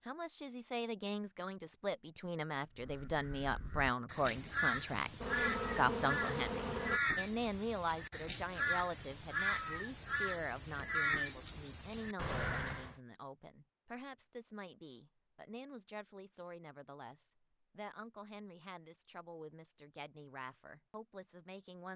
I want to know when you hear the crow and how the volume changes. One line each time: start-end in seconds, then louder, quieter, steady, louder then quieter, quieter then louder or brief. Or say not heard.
2.8-12.9 steady.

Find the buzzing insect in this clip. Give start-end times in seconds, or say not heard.
5.2-7.0.